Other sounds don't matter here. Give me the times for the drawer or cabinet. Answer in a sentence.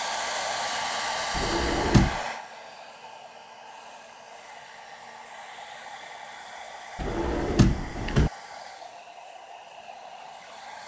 The drawer or cabinet can be heard from 1.3 to 2.2 s and from 7.0 to 8.3 s.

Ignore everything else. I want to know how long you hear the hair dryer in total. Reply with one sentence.
The hair dryer can be heard for 11 seconds in total.